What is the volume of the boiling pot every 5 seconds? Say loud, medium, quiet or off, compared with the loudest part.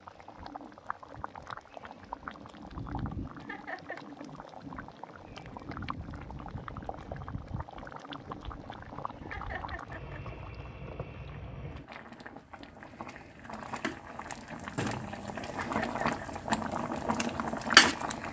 quiet, quiet, quiet, loud.